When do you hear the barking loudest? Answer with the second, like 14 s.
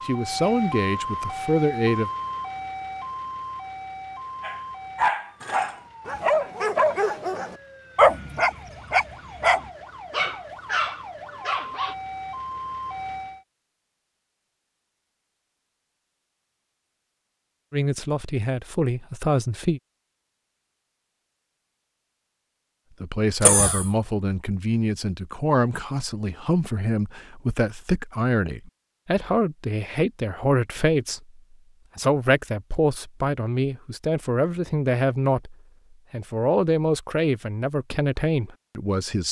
8 s.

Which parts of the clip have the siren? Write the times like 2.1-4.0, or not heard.
0.0-13.4.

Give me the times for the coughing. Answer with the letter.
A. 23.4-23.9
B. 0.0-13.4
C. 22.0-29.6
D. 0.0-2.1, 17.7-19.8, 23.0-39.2
A.